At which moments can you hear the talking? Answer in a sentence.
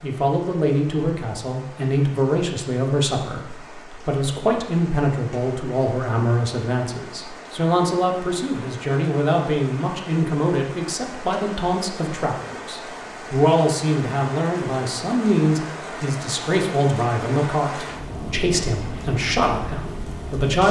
You can hear the talking from 0.0 to 20.6 s.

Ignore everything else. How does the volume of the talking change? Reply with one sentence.
The loudness of the talking stays about the same.